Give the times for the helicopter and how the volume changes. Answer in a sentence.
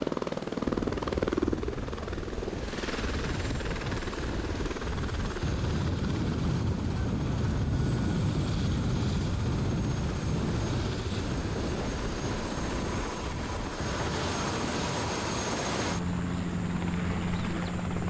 You can hear the helicopter from 0.0 to 18.0 s, getting quieter then louder.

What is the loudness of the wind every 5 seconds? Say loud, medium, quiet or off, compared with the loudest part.
medium, loud, medium, medium.